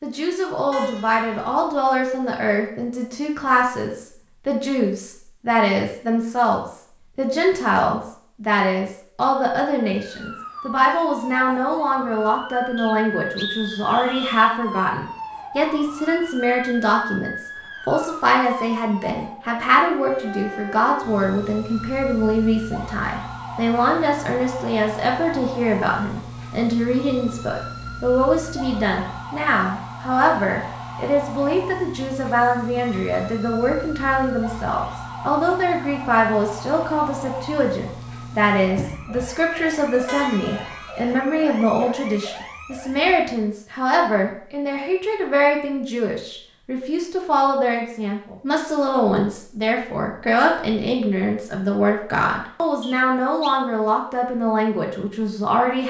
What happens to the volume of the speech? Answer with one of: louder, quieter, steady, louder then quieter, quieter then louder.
steady.